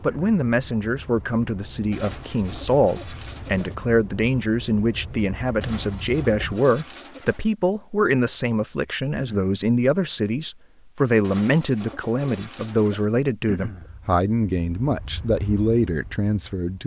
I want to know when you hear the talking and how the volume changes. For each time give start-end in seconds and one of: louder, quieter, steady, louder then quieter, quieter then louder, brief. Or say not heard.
0.0-16.8 steady.